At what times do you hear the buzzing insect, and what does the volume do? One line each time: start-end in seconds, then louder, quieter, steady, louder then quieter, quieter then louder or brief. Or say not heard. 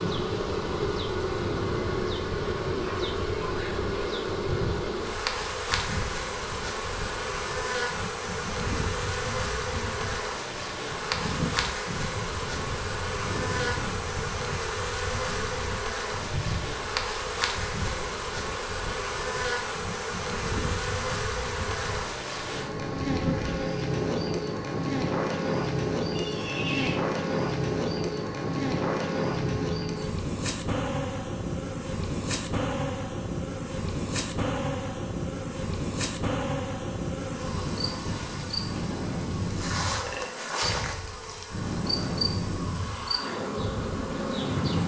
0.0-44.8 steady.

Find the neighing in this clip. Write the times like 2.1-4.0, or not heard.
26.1-27.0.